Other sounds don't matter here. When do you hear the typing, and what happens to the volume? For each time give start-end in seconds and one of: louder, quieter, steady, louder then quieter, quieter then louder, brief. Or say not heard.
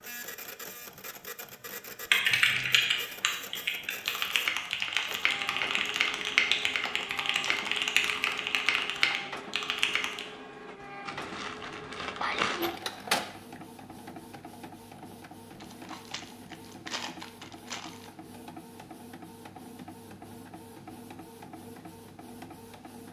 2.1-10.2 steady.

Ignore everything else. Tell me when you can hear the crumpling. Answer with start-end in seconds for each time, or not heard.
2.3-2.9, 11.1-12.8, 15.6-18.1.